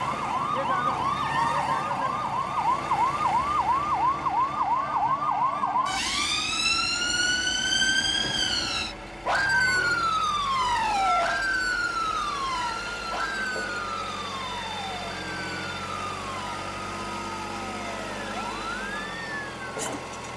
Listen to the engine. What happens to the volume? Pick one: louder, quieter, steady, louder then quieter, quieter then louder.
quieter then louder.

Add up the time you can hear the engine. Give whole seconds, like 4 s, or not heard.
20 s.